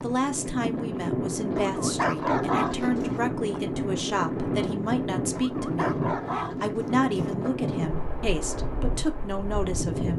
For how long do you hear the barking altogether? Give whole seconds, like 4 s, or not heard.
4 s.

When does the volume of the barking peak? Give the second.
2 s.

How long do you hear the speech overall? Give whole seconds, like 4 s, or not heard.
10 s.